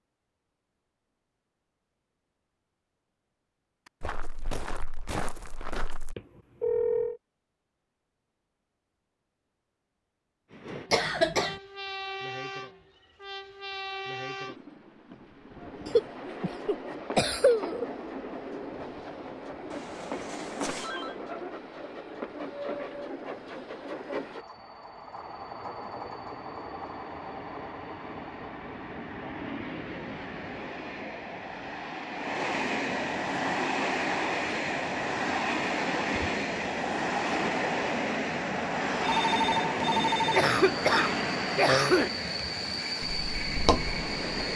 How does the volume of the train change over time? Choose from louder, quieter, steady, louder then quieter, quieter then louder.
louder.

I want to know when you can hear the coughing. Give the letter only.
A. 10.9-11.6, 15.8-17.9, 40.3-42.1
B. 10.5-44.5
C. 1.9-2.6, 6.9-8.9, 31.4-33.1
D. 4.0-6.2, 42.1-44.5
A.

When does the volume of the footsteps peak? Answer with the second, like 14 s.
44 s.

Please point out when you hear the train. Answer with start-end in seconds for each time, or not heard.
10.5-44.5.